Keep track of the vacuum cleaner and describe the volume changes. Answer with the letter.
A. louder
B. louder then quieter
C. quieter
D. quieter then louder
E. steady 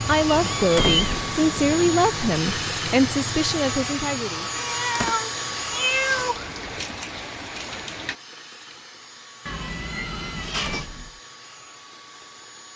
C.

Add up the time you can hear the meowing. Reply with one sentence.
The meowing can be heard for 5 seconds in total.